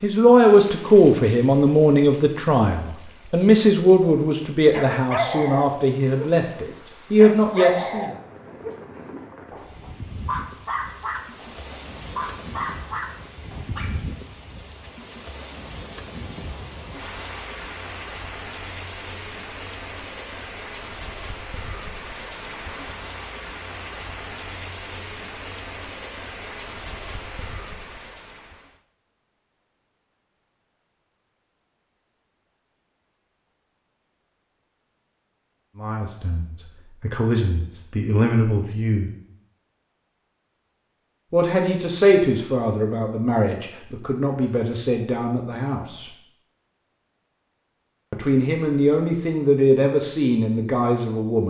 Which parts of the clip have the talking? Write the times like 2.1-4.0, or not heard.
0.0-8.1, 35.8-39.1, 41.3-46.1, 48.1-51.4.